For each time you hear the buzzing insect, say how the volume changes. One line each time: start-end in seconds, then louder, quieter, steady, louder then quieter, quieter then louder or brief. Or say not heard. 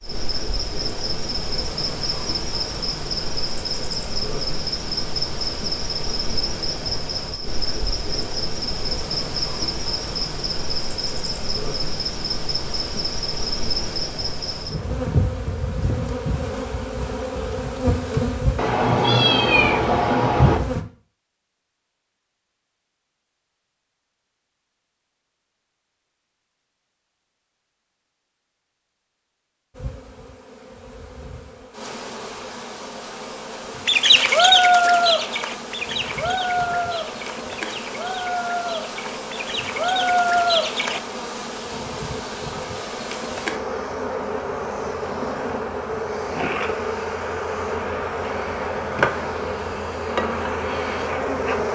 0.0-20.9 steady
29.7-51.7 louder.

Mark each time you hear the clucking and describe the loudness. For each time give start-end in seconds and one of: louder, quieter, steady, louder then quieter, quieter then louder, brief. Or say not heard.
33.9-41.0 quieter then louder.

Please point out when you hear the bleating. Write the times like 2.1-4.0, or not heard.
not heard.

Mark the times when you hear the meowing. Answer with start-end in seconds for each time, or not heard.
18.6-20.6.